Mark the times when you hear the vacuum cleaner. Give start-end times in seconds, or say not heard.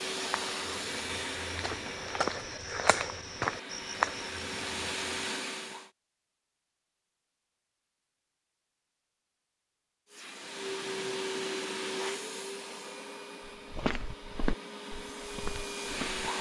0.0-5.9, 10.1-16.3.